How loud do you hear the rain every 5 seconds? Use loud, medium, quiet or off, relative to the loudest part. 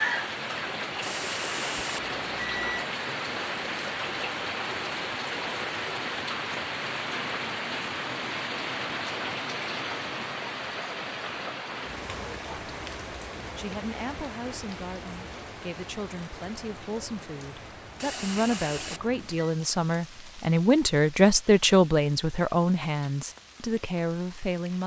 loud, loud, medium, quiet, quiet.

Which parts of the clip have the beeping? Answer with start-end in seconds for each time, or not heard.
1.0-2.9, 17.9-19.6.